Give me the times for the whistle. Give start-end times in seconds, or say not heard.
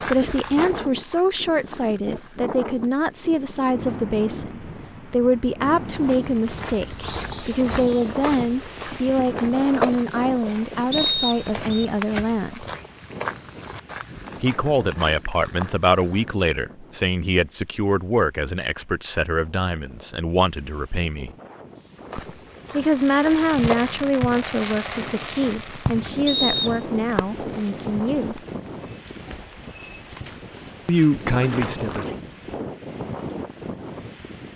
10.9-11.8, 26.2-26.8.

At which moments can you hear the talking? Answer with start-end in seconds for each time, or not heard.
0.1-12.7, 14.4-21.3, 22.7-28.4, 30.9-32.1.